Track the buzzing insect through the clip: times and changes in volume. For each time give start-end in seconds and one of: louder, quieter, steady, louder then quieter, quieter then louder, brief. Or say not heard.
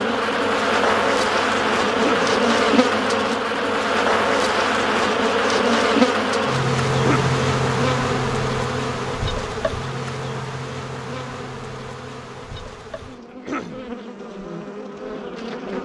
0.0-15.7 quieter.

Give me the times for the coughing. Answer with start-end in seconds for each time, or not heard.
1.9-2.4, 7.0-7.4, 13.3-13.8.